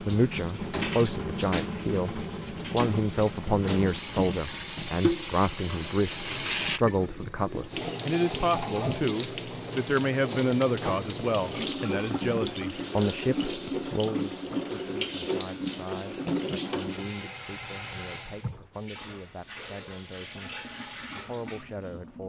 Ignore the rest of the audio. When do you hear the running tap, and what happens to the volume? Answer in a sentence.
The running tap can be heard from 0.0 to 22.2 s, getting quieter.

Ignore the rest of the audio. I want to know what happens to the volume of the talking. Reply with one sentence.
The loudness of the talking goes down.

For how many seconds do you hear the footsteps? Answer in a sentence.
You can't hear the footsteps here.